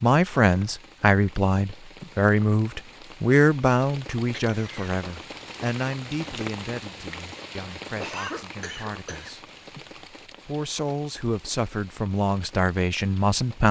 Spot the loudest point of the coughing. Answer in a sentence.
The volume of the coughing peaks at 8 seconds.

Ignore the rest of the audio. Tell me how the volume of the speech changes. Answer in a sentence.
The loudness of the speech goes down, then up.